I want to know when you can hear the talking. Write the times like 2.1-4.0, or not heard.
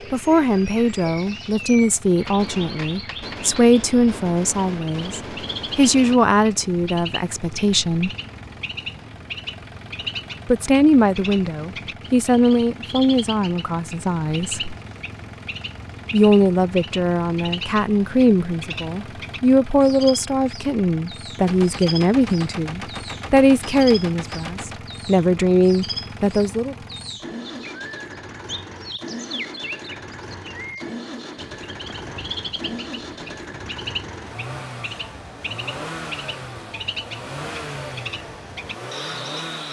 0.1-8.1, 10.4-14.8, 16.1-26.8.